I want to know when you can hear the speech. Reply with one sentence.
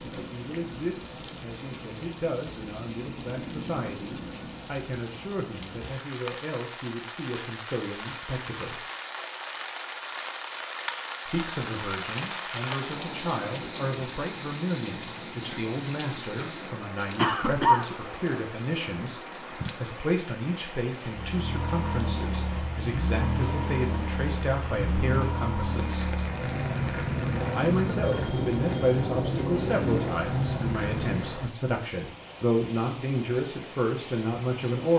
You can hear the speech from 0.0 to 8.8 s, from 11.2 to 26.1 s and from 27.6 to 34.9 s.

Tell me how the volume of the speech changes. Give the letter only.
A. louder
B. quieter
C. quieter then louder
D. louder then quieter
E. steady
A.